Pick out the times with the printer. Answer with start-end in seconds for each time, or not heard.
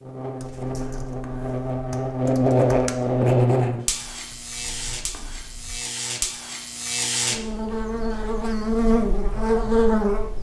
not heard.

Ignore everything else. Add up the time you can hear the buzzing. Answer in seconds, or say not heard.
10 s.